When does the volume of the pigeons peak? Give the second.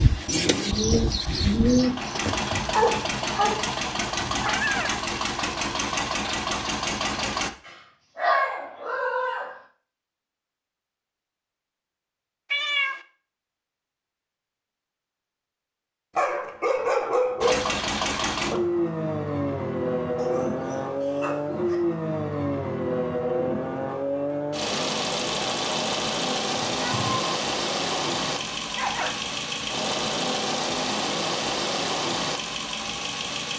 2 s.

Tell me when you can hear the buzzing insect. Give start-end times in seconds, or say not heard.
not heard.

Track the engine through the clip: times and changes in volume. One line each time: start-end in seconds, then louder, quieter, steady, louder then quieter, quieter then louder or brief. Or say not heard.
0.0-7.5 louder
17.4-33.5 steady.